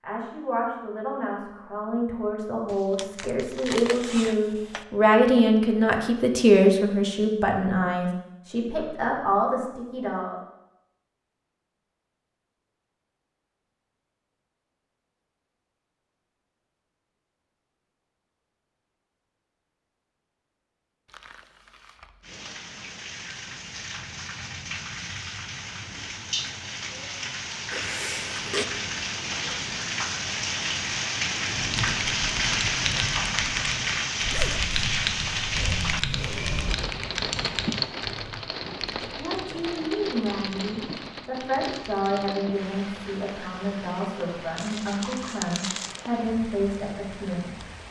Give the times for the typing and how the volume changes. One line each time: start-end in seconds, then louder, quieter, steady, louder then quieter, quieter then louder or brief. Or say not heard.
31.6-42.5 quieter.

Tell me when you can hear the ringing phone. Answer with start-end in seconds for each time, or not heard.
not heard.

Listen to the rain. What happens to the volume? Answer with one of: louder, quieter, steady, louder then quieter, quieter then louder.
louder then quieter.